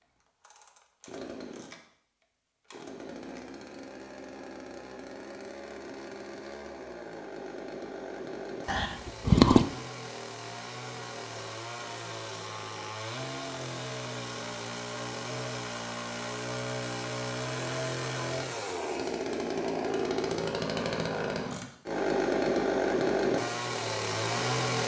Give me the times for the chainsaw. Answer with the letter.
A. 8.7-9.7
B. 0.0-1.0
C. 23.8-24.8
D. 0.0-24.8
D.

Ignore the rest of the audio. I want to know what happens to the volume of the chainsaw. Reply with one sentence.
The volume of the chainsaw goes up.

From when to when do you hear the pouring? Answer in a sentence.
You can hear the pouring from 8.7 to 9.7 s.